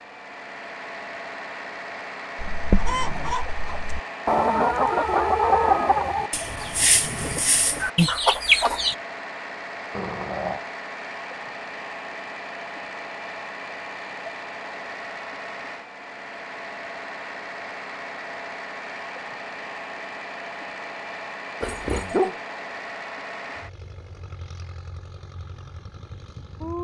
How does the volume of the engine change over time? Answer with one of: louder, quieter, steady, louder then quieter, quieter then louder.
steady.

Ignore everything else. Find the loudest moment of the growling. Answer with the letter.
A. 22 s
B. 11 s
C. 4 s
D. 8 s
A.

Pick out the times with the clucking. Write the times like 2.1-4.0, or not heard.
2.4-8.9.